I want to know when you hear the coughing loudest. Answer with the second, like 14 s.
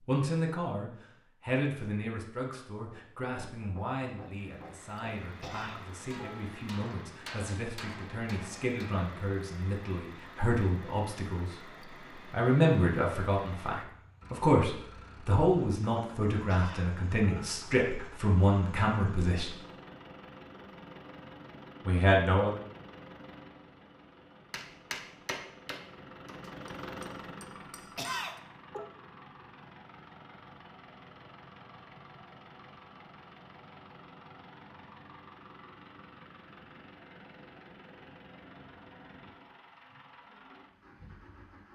28 s.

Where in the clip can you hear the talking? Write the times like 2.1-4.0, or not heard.
0.1-19.6, 21.9-22.6.